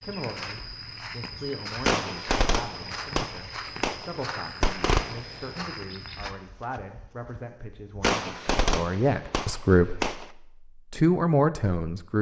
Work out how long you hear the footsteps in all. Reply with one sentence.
The footsteps can be heard for 6 seconds in total.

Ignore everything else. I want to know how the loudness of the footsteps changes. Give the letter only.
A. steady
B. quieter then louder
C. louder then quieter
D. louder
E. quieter
A.